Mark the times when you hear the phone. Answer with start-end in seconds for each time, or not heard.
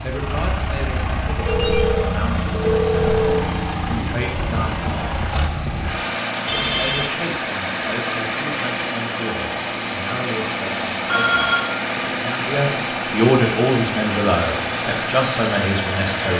1.4-3.7, 6.5-7.1, 11.1-11.7.